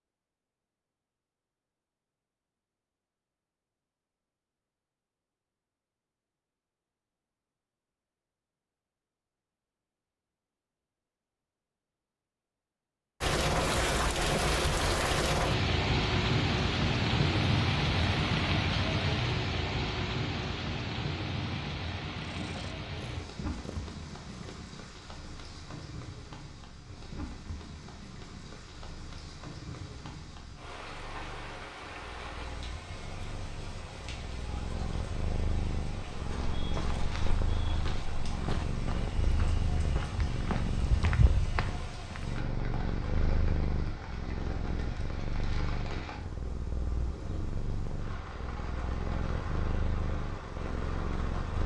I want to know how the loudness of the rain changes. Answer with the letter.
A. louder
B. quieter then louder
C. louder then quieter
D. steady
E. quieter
E.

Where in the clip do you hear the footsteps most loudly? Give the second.
41 s.